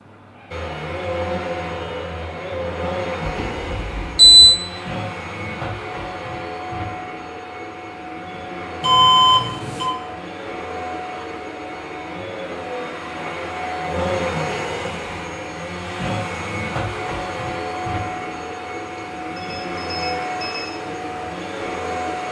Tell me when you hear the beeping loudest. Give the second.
4 s.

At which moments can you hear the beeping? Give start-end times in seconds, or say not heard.
3.2-4.6, 8.8-9.9, 18.9-20.8.